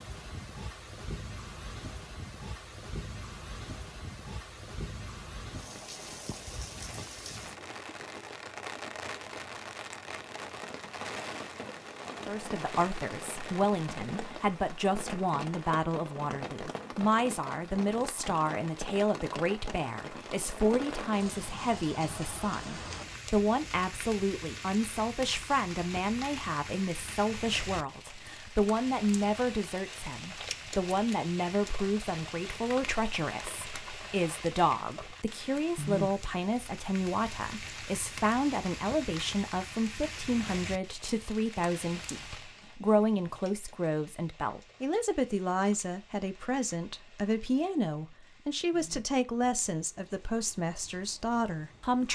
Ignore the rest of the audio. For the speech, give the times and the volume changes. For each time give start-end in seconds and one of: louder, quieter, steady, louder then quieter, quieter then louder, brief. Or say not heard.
12.2-52.0 steady.